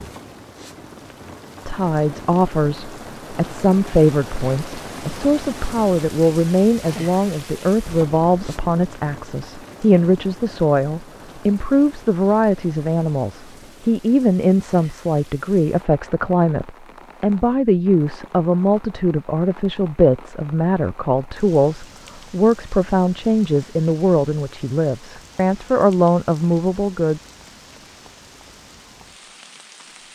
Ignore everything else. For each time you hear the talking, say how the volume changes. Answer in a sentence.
You can hear the talking from 1.6 to 27.2 s, at a steady volume.